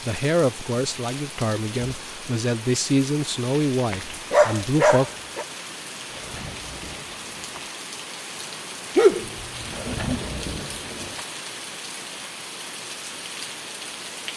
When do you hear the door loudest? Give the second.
10 s.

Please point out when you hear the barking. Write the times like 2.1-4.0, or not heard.
3.9-5.5, 8.9-10.4.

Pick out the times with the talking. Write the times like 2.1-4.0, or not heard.
0.0-5.0.